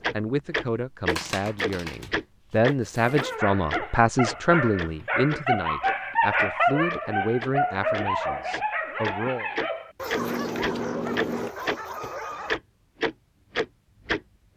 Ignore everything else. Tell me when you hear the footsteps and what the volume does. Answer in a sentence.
You can't hear the footsteps here.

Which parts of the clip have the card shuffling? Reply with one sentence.
You can hear the card shuffling from 1.1 to 2.1 s, from 2.9 to 3.4 s and from 10.2 to 11.5 s.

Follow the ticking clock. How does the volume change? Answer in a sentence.
The loudness of the ticking clock goes down, then up.